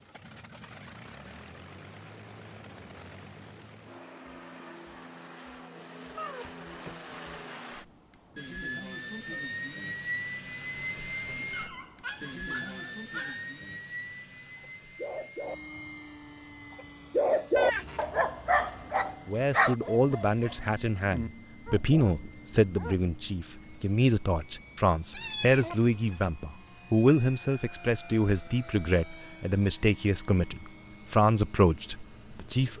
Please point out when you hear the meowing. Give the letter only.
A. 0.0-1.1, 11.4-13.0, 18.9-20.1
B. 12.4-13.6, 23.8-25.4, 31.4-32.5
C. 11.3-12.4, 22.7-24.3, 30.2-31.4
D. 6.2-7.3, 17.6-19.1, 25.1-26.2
D.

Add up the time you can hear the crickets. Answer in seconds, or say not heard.
not heard.